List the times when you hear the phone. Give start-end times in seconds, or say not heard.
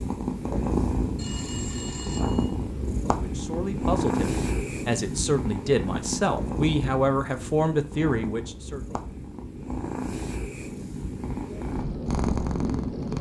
1.1-2.5.